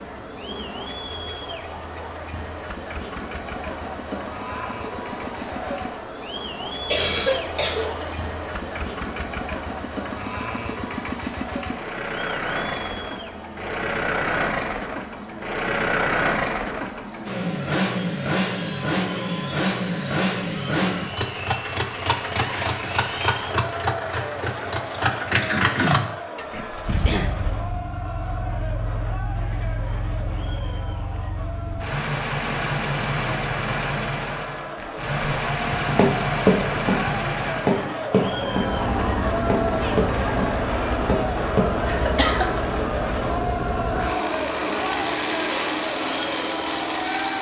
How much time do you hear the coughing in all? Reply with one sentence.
You can hear the coughing for 4 seconds altogether.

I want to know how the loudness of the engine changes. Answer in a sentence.
The loudness of the engine goes up.